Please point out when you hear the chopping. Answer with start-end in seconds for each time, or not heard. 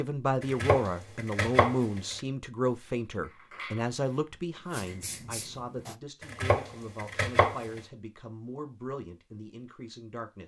0.4-2.2, 6.2-7.8.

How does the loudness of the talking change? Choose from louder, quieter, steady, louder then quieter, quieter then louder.
quieter.